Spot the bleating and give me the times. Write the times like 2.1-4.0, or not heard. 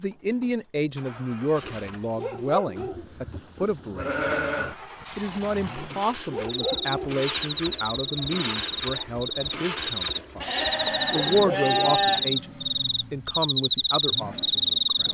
2.8-4.8, 10.4-12.3.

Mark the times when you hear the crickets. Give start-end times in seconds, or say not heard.
6.5-15.0.